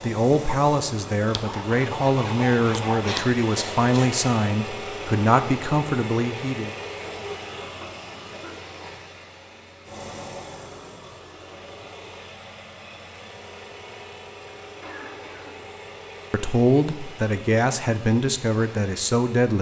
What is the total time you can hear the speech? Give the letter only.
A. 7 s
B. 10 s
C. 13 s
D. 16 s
B.